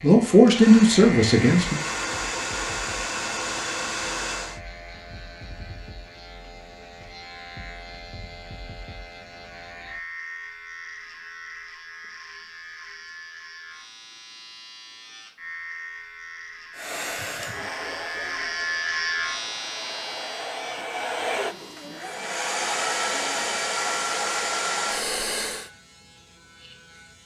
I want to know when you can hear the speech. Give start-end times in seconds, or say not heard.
0.0-1.8.